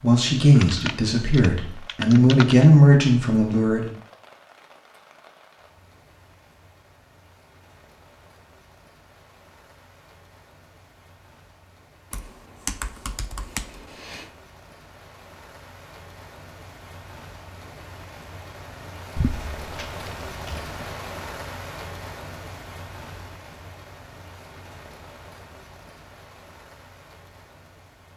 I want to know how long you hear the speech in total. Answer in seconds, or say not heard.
4 s.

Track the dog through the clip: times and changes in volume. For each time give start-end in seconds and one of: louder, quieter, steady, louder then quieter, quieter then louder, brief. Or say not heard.
not heard.